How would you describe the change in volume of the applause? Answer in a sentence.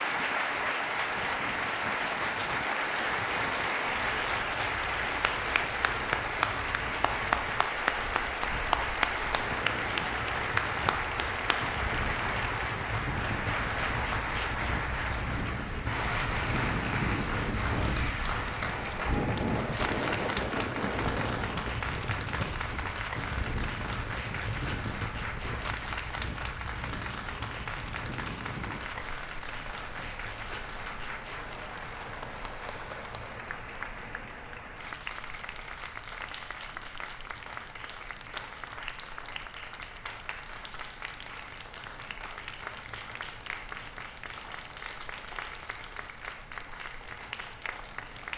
The volume of the applause goes down.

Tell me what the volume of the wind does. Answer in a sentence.
The loudness of the wind goes up, then down.